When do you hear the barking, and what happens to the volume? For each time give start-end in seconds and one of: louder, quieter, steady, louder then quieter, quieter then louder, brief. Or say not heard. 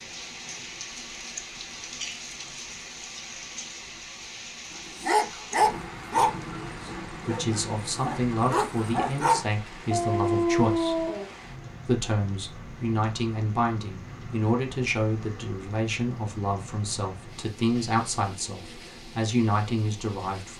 5.0-11.2 quieter then louder.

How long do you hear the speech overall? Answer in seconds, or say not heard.
13 s.